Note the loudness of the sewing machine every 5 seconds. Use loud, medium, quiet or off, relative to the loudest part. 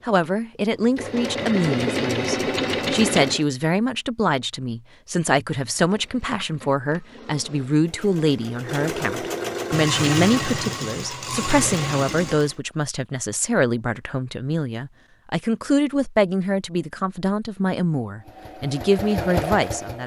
loud, medium, loud, medium.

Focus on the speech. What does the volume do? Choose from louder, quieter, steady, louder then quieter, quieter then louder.
steady.